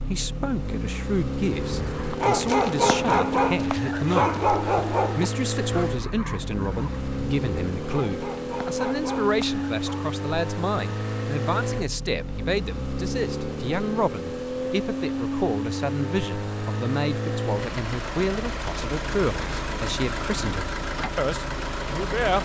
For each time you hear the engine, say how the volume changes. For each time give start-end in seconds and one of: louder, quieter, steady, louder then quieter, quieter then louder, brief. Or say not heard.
0.0-22.4 steady.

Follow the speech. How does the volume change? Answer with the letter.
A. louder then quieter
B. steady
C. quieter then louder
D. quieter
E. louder
B.